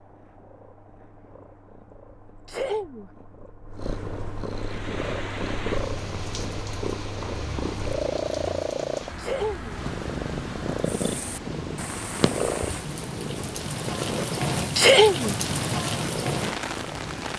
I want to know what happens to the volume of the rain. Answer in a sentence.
The loudness of the rain goes up.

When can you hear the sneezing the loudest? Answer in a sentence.
The volume of the sneezing peaks at 15 seconds.